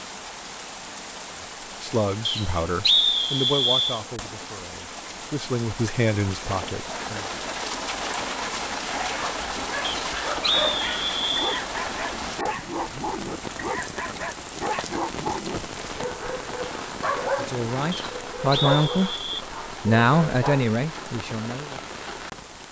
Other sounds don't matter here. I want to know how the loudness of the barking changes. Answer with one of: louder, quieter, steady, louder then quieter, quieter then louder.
steady.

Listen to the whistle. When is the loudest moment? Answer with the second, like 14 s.
3 s.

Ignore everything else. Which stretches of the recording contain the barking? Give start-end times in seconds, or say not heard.
8.9-20.7.